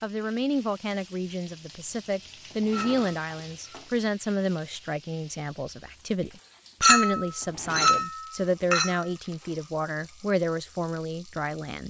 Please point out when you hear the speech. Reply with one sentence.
You can hear the speech from 0.0 to 11.8 s.